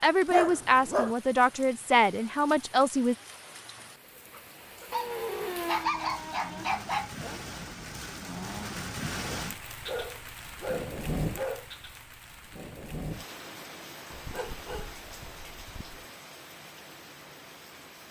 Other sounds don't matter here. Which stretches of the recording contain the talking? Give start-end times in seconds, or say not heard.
0.0-3.1.